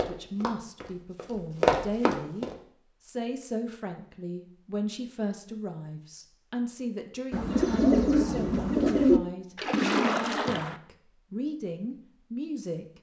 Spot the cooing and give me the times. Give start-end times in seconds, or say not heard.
7.3-9.2.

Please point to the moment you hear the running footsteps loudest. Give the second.
2 s.